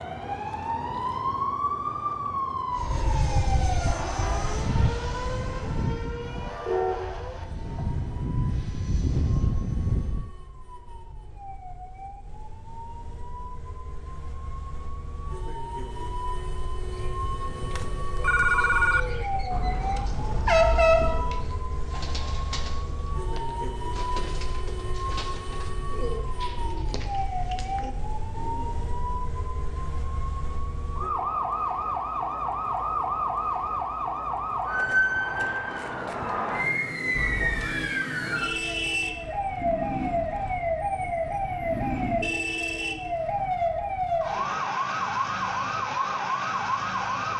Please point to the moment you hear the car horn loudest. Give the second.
21 s.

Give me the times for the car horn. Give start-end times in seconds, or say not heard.
6.7-8.0, 19.5-21.4, 37.1-37.8.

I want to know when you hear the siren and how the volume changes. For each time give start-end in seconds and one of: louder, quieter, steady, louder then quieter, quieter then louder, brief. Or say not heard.
0.0-47.3 quieter then louder.